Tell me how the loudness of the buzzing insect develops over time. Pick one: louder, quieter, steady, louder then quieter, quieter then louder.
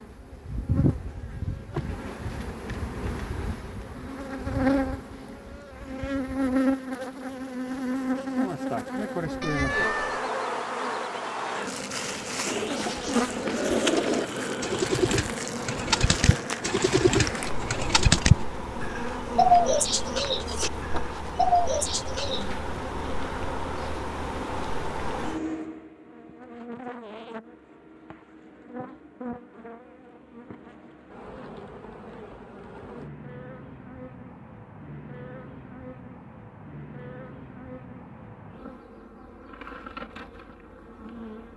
quieter.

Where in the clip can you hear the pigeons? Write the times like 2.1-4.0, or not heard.
12.4-22.4.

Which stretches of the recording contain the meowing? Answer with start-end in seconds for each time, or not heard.
9.4-10.3.